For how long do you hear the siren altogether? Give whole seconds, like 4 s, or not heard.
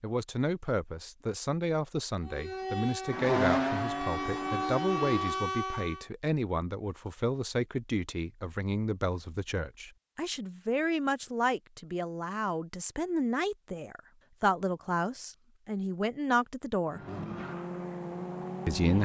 4 s.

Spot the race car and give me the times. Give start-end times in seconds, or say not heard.
3.0-5.4, 16.9-18.9.